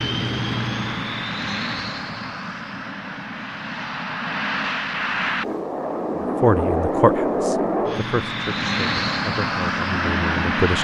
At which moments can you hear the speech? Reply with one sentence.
You can hear the speech from 6.4 to 10.8 s.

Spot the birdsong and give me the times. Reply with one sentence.
You can't hear the birdsong here.